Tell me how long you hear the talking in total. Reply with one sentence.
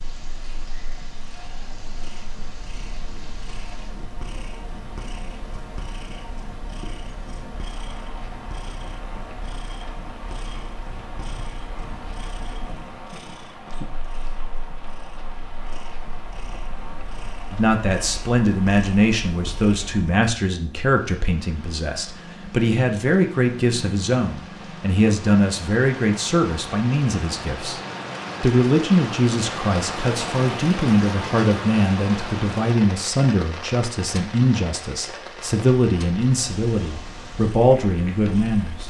You can hear the talking for 21 seconds altogether.